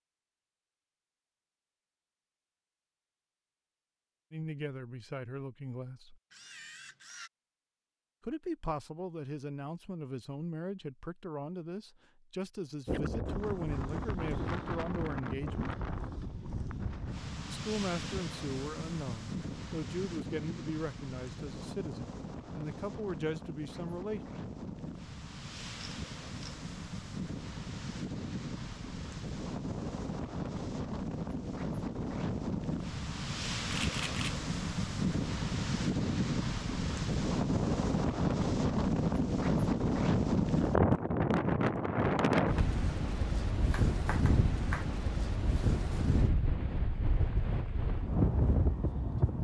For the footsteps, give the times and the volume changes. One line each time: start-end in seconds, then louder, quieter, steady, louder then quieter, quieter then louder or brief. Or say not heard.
not heard.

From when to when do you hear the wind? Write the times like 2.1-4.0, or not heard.
12.8-49.3.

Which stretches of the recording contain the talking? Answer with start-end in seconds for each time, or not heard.
4.3-6.2, 8.2-15.8, 17.4-24.2.